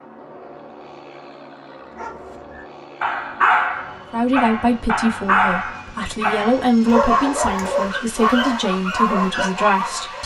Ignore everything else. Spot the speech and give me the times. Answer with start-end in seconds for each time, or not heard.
4.1-10.2.